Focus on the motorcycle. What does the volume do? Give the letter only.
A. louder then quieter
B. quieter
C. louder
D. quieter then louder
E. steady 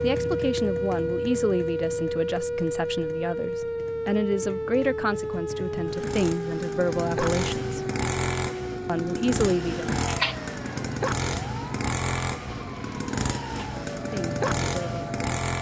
C.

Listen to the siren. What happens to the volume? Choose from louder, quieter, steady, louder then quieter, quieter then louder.
quieter.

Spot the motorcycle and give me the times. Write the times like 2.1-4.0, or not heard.
0.0-15.5.